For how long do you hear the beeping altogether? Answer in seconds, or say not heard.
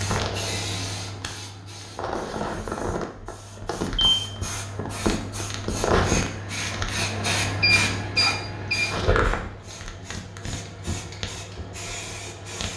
2 s.